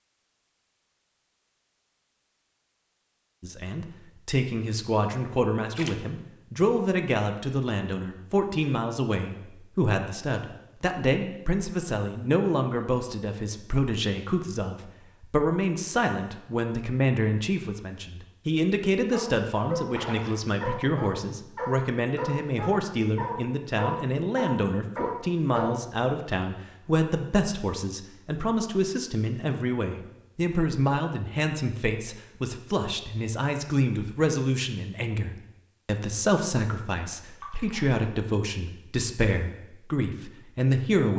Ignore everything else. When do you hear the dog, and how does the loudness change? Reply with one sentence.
The dog can be heard from 19.1 to 25.8 s, at a steady volume.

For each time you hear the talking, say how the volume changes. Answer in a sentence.
The talking can be heard from 3.4 to 41.1 s, at a steady volume.